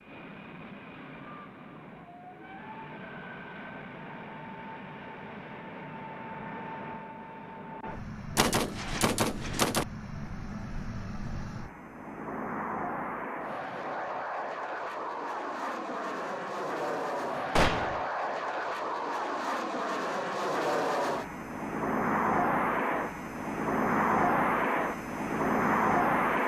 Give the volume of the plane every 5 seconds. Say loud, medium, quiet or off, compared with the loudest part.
quiet, quiet, medium, medium, loud, loud.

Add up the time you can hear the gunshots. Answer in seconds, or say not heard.
2 s.